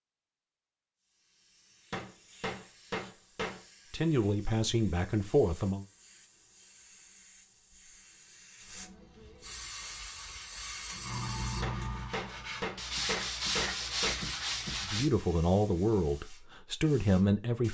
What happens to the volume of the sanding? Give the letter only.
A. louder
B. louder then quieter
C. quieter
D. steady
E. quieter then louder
A.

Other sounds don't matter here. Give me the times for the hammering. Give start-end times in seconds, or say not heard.
1.9-3.6, 11.6-14.2.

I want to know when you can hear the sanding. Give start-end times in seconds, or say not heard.
9.7-15.1.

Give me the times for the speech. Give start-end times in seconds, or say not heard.
3.9-5.8, 14.8-17.6.